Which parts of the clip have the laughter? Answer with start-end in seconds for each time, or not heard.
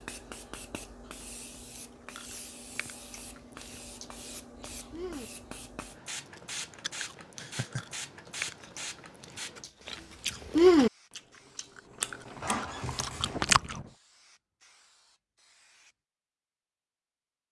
7.3-8.0.